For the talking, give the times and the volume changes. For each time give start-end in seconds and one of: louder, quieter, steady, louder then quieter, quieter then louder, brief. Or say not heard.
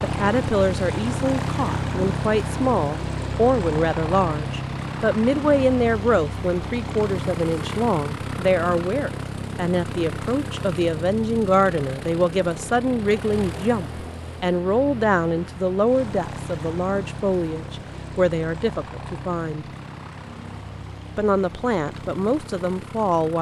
0.0-19.6 steady
21.1-23.3 brief.